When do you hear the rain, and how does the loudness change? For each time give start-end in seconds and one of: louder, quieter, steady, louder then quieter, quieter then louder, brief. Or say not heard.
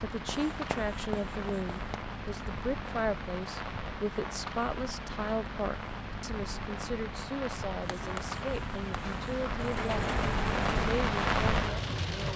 0.0-12.3 louder.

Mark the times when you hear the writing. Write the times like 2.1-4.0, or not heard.
0.2-2.0, 7.8-9.4.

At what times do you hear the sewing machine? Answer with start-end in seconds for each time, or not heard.
9.1-10.9.